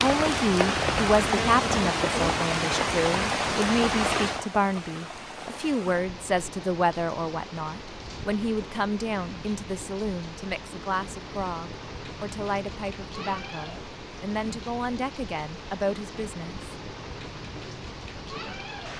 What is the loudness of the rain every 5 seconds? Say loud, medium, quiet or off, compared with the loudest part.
loud, quiet, quiet, quiet.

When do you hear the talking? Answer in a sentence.
You can hear the talking from 0.0 to 16.6 s.